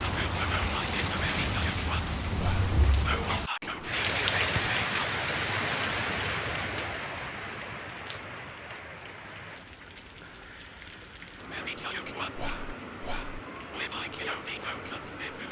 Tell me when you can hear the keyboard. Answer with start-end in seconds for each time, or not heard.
not heard.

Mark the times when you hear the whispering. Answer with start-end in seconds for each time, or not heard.
0.0-5.0, 11.5-15.4.